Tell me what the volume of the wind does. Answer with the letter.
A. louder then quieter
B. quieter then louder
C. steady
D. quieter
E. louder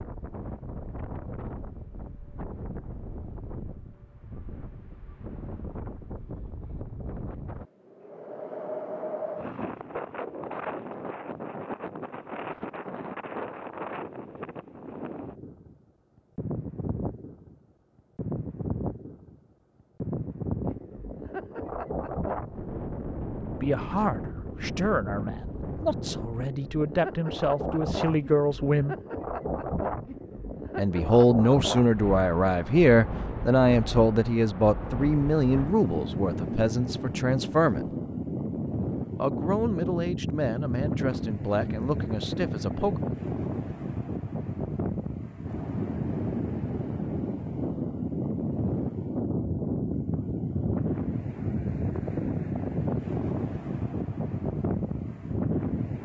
E.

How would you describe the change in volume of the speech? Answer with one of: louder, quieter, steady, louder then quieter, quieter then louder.
louder then quieter.